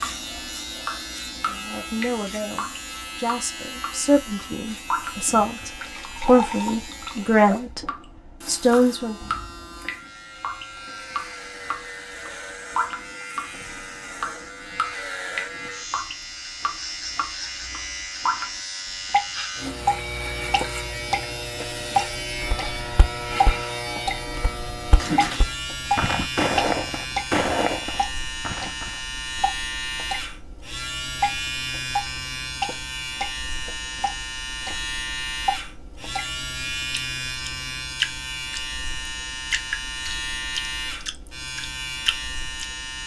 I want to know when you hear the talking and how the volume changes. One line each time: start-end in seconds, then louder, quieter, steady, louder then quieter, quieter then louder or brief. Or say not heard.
1.4-9.2 louder.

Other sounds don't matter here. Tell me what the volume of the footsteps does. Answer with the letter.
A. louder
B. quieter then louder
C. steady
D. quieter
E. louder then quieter
A.